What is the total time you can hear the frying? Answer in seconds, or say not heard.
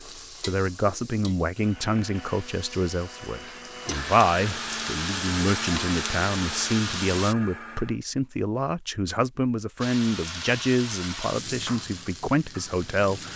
11 s.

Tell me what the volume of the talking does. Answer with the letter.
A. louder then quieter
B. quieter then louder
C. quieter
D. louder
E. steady
E.